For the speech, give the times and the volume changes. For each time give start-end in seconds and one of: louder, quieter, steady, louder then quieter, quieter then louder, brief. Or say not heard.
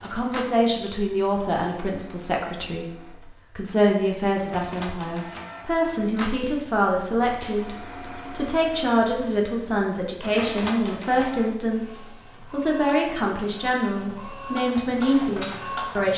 0.0-16.1 steady.